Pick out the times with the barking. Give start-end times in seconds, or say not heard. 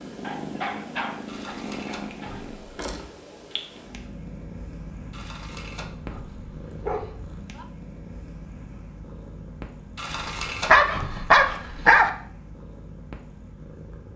0.2-2.5, 6.7-7.7, 10.7-12.1.